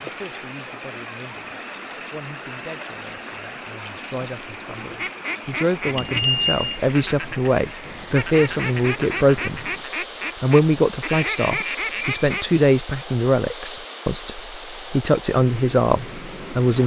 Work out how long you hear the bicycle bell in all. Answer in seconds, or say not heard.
2 s.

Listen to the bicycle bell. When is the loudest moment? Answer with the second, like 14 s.
6 s.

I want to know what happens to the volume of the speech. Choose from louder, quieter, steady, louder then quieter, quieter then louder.
louder.